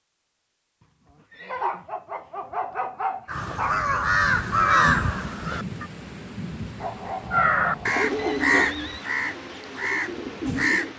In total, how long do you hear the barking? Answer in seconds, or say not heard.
4 s.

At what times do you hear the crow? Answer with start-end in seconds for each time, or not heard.
3.2-5.9, 7.3-10.9.